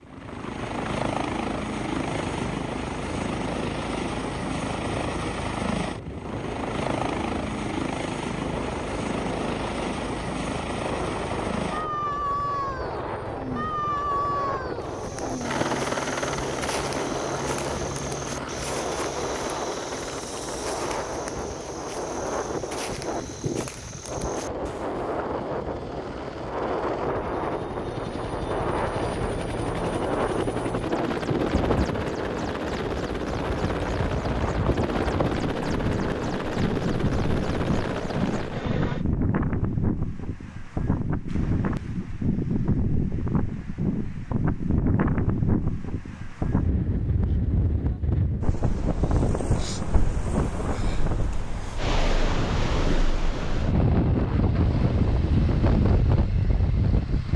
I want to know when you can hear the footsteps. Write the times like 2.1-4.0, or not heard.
14.8-25.1.